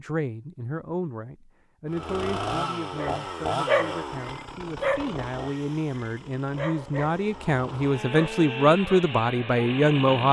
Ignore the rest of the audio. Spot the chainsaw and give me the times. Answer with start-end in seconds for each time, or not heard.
1.9-10.2.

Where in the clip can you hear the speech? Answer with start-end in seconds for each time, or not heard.
0.0-10.2.